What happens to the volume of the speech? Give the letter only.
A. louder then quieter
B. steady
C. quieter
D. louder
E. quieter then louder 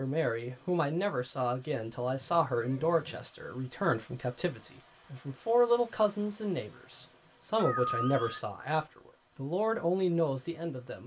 B.